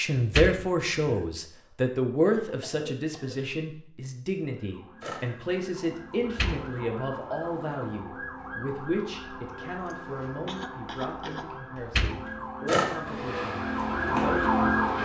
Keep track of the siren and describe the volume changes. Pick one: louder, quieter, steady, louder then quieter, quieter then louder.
louder.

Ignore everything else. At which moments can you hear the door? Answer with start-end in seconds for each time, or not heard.
0.1-1.2, 6.2-6.7, 11.8-12.2.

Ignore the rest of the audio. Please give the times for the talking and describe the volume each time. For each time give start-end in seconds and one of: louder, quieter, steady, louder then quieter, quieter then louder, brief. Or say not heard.
0.0-14.8 quieter.